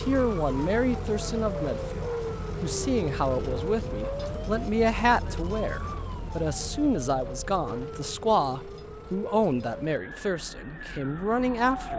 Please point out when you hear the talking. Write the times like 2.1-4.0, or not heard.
0.0-11.9.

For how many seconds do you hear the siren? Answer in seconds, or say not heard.
12 s.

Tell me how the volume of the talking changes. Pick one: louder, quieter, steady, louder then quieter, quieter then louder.
steady.